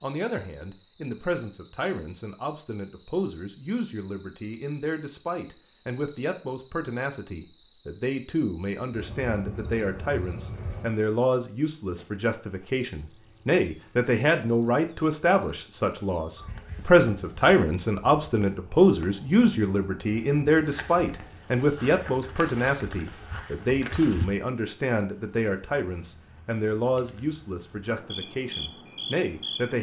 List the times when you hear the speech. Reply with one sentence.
You can hear the speech from 0.0 to 29.7 s.